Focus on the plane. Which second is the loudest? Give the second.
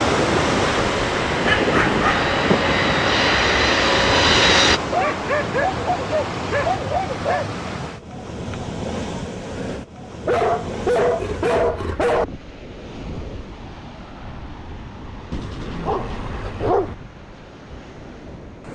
4 s.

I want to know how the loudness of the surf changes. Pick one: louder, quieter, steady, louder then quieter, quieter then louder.
quieter.